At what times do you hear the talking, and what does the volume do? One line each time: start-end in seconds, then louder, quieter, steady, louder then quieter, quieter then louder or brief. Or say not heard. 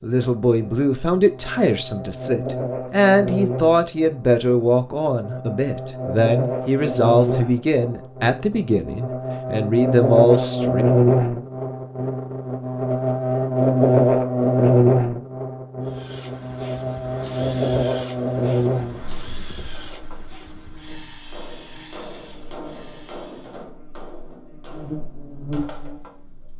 0.0-10.8 steady.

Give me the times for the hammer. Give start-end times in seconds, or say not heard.
19.6-26.5.